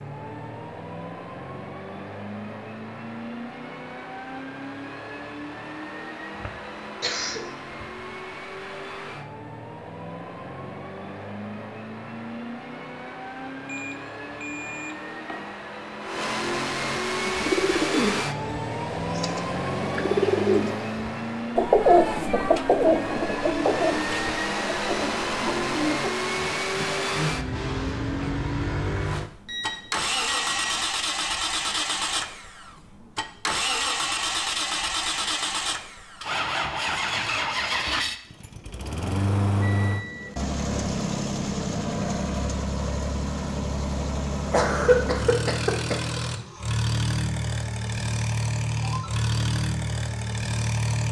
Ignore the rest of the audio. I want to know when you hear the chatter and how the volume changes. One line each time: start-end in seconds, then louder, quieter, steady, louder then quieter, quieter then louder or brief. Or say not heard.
not heard.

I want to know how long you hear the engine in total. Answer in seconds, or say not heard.
51 s.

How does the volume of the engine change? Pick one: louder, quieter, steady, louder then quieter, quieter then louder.
louder.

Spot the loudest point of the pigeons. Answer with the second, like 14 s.
22 s.